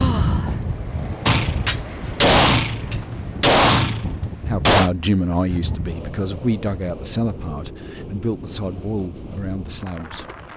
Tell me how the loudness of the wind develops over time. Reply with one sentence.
The loudness of the wind goes down.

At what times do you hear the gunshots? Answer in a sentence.
You can hear the gunshots from 1.2 to 4.9 s.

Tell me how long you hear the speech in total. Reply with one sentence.
The speech can be heard for 6 seconds in total.